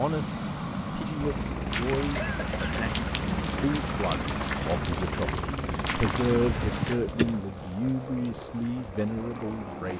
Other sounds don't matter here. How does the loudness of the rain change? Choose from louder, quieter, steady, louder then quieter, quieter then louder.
quieter.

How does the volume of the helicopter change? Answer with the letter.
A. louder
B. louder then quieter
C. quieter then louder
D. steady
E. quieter
E.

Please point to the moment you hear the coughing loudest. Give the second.
7 s.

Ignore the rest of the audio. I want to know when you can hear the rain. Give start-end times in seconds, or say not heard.
1.7-9.9.